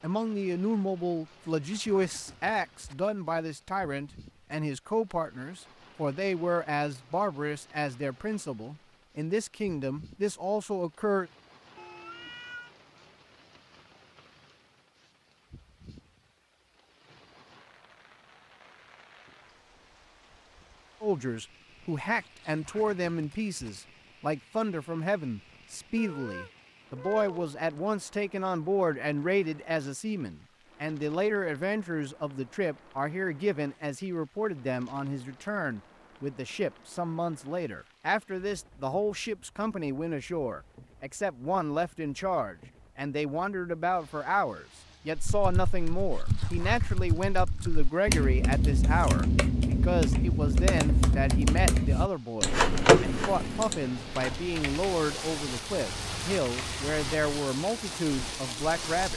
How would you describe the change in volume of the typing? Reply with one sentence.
The volume of the typing goes up.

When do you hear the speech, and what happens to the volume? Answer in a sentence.
The speech can be heard from 0.0 to 11.3 s, at a steady volume; and from 21.0 to 59.1 s, at a steady volume.